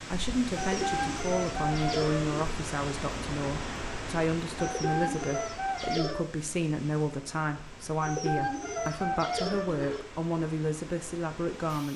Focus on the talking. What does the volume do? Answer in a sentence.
The loudness of the talking stays about the same.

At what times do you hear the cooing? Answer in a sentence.
The cooing can be heard from 0.6 to 2.4 s, from 4.5 to 6.2 s and from 8.0 to 10.0 s.